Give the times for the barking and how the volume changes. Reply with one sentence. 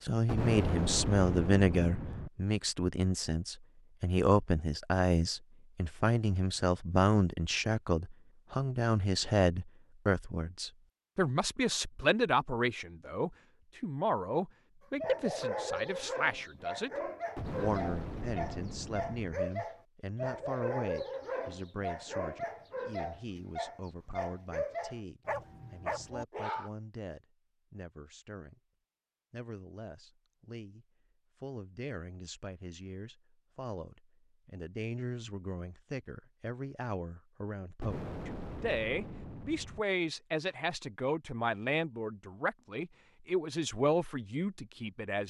The barking can be heard from 15.0 to 26.7 s, at a steady volume.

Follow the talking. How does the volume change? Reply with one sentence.
The volume of the talking goes down, then up.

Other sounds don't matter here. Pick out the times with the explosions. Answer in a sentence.
The explosions can be heard from 0.2 to 2.3 s, from 17.4 to 19.4 s and from 37.8 to 39.9 s.